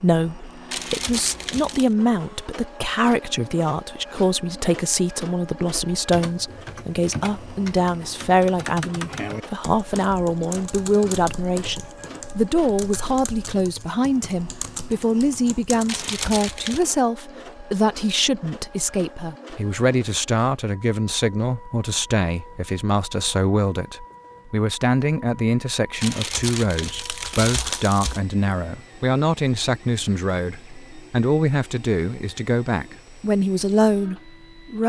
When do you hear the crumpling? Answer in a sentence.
You can hear the crumpling from 0.7 to 1.9 s, from 15.8 to 16.9 s and from 26.0 to 28.2 s.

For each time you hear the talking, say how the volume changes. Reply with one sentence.
The talking can be heard from 0.0 to 34.8 s, at a steady volume.